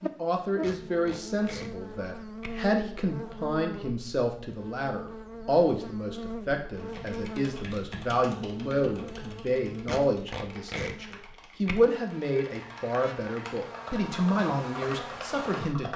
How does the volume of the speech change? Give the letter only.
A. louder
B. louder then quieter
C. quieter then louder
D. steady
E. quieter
D.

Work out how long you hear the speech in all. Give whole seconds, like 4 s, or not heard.
16 s.